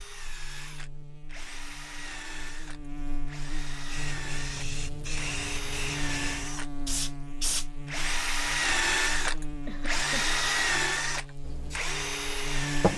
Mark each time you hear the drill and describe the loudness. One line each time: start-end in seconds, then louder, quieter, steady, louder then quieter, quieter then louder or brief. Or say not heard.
0.0-12.9 louder.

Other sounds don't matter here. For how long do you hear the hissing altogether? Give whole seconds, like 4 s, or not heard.
4 s.